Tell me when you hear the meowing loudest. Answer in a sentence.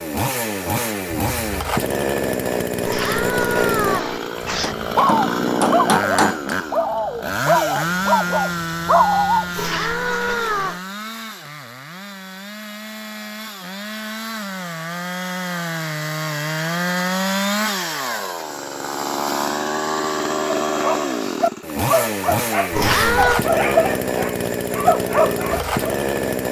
The loudest moment of the meowing is at 23 seconds.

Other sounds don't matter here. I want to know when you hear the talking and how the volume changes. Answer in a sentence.
You can't hear the talking here.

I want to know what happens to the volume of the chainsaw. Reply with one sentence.
The volume of the chainsaw goes down, then up.